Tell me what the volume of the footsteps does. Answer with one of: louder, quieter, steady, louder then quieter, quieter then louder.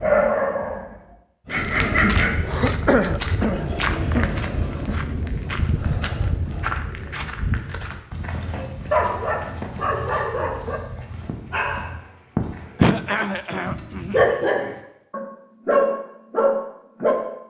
quieter.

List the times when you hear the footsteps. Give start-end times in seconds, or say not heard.
1.4-12.8.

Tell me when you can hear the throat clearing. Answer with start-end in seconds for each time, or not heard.
2.5-5.1, 12.8-14.2.